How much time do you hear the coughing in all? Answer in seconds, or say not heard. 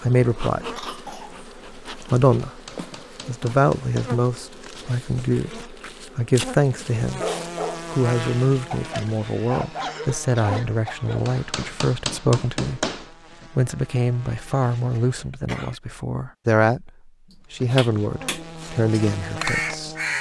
3 s.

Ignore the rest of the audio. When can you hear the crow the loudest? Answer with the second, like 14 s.
20 s.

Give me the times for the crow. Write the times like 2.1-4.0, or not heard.
17.3-20.1.